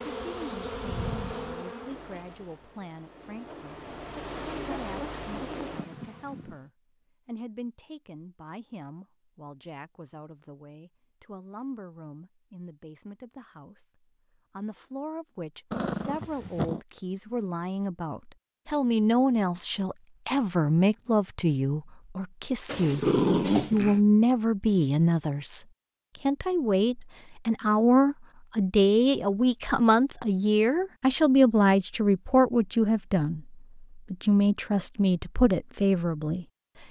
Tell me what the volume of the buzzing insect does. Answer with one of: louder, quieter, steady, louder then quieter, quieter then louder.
quieter then louder.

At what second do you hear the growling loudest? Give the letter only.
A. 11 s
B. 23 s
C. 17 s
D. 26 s
B.